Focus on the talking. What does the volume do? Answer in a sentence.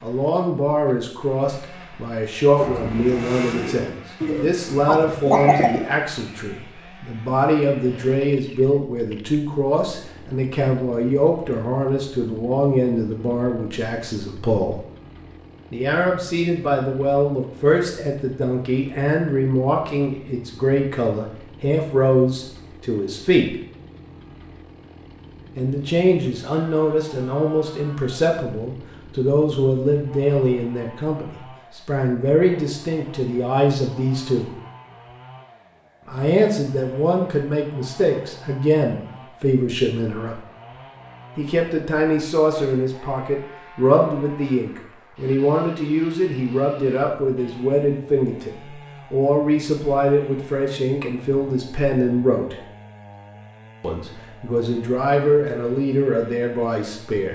The loudness of the talking stays about the same.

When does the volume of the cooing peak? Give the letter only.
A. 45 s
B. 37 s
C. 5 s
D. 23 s
C.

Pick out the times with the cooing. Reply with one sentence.
You can hear the cooing from 2.6 to 5.9 s.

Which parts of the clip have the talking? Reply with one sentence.
The talking can be heard from 0.0 to 14.8 s, from 15.7 to 23.6 s, from 25.6 to 34.5 s, from 36.0 to 40.4 s, from 41.4 to 52.5 s and from 53.8 to 57.3 s.